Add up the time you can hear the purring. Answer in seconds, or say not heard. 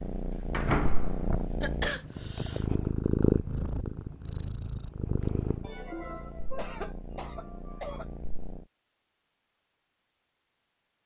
9 s.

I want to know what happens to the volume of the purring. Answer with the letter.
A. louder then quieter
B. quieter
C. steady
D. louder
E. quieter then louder
A.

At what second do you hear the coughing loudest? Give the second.
2 s.